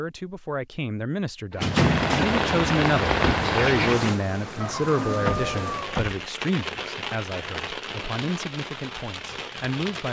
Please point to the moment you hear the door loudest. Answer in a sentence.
The volume of the door peaks at 2 seconds.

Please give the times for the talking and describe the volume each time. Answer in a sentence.
You can hear the talking from 0.0 to 10.0 s, getting louder then quieter.